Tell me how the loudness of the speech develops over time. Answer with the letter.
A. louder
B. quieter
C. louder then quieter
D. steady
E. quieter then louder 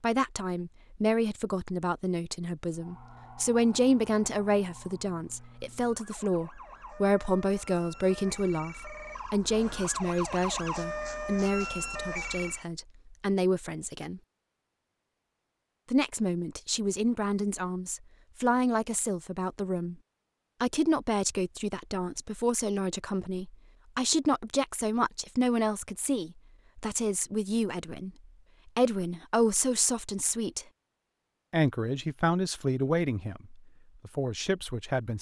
D.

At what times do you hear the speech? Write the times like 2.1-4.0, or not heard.
0.0-14.2, 15.9-19.9, 20.6-30.6, 31.5-35.1.